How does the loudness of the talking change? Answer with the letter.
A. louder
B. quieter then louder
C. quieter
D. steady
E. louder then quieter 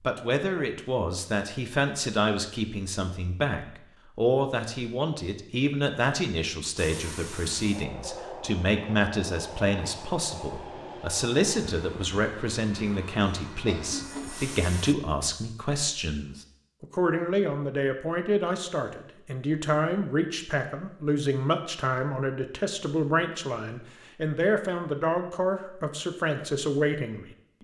D.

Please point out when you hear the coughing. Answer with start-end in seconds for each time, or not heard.
13.7-14.5.